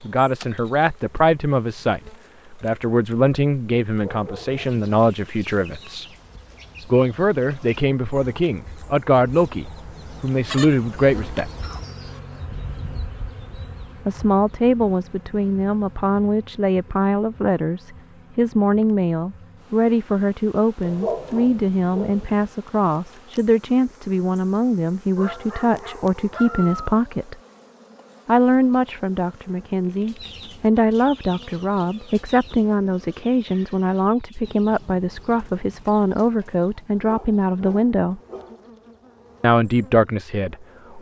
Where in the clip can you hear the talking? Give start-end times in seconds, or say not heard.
0.0-6.1, 6.8-11.5, 14.1-27.4, 28.2-38.2, 39.4-40.9.